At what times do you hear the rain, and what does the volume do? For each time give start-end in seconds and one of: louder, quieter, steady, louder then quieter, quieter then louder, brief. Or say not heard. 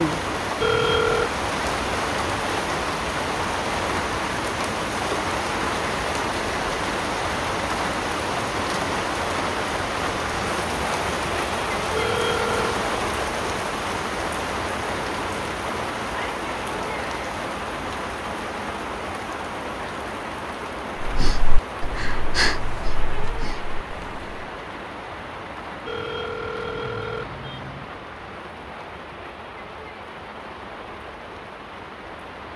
0.0-32.5 quieter.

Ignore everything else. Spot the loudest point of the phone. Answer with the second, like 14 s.
1 s.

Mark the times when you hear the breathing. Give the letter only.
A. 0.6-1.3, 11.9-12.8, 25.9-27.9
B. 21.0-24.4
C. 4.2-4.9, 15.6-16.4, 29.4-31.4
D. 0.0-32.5
B.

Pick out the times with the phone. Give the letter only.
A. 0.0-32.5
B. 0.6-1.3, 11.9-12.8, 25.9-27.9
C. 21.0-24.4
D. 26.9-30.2
B.